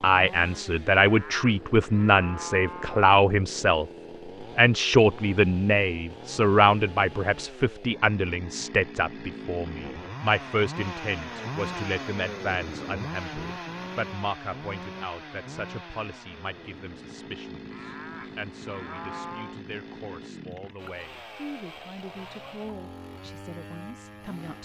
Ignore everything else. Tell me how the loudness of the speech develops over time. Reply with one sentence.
The loudness of the speech goes down.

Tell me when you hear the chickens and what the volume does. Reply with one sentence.
The chickens can't be heard in this clip.